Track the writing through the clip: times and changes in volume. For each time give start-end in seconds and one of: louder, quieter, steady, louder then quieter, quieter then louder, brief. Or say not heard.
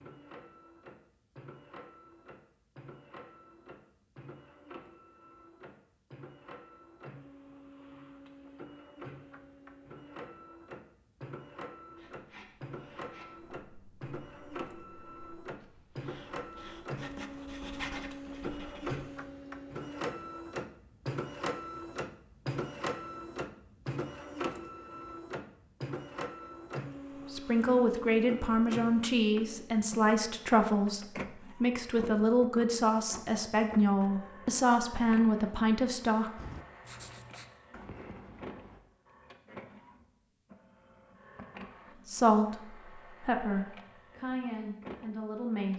11.9-19.0 quieter then louder
36.4-38.8 brief.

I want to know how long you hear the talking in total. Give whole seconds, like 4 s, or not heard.
13 s.